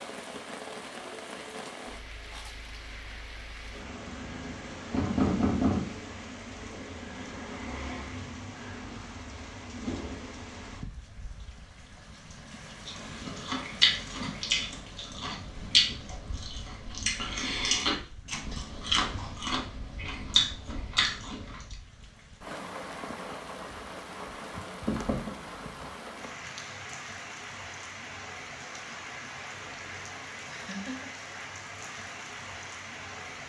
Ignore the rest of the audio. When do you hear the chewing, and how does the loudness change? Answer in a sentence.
The chewing can be heard from 12.8 to 21.8 s, at a steady volume.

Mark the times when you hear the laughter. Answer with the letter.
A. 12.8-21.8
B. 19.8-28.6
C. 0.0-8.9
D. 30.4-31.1
D.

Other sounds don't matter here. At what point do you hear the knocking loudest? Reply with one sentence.
The volume of the knocking peaks at 5 seconds.